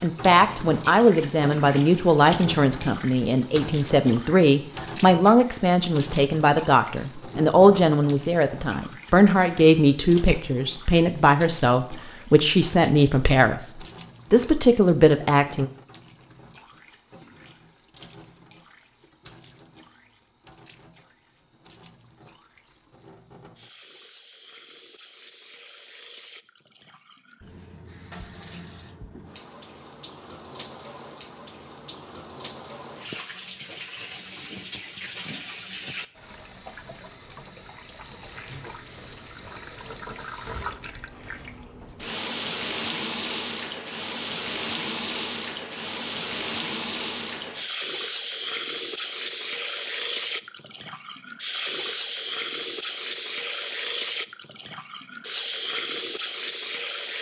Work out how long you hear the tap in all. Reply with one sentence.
You can hear the tap for 57 seconds altogether.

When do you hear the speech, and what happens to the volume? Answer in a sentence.
The speech can be heard from 0.0 to 15.7 s, at a steady volume.